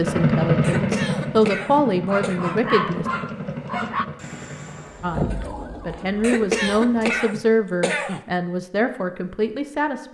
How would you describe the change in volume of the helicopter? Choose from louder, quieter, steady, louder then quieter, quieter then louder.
quieter.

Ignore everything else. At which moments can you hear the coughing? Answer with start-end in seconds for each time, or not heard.
0.6-2.4, 6.2-8.2.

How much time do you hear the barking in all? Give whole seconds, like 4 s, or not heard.
2 s.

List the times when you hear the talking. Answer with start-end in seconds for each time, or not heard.
0.0-3.0, 5.0-10.0.